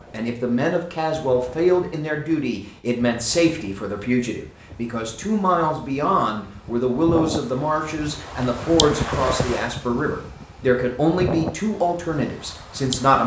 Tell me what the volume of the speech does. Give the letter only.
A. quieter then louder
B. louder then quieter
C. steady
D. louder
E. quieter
C.